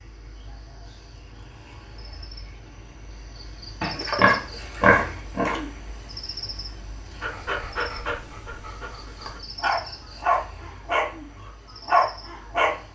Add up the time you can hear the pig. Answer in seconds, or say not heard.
2 s.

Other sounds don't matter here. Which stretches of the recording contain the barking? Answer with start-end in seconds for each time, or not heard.
7.2-12.8.